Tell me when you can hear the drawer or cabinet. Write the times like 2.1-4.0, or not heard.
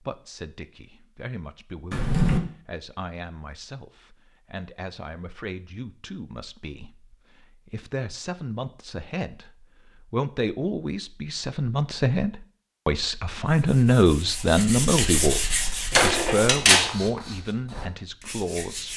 1.9-2.4, 15.9-16.9.